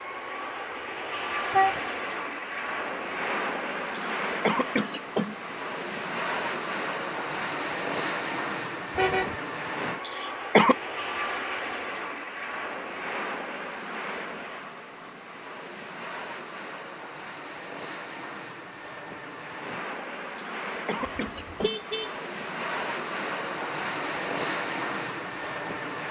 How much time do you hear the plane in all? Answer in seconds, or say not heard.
26 s.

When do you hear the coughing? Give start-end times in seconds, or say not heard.
4.0-5.3, 10.1-10.8, 20.4-21.8.